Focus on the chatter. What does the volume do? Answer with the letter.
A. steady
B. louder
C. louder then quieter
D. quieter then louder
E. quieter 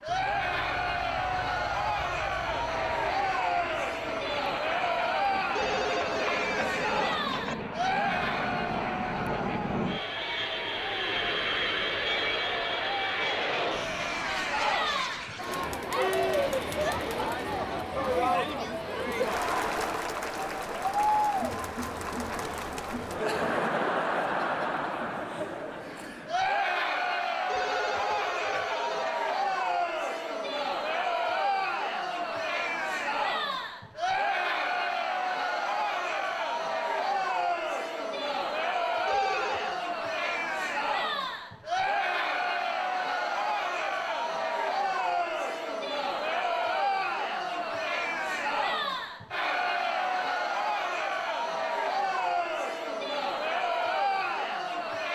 A.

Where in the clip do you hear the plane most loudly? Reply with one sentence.
The loudest moment of the plane is at 12 seconds.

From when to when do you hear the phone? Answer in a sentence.
The phone can be heard from 5.5 to 7.5 s, from 27.4 to 29.2 s and from 39.0 to 39.8 s.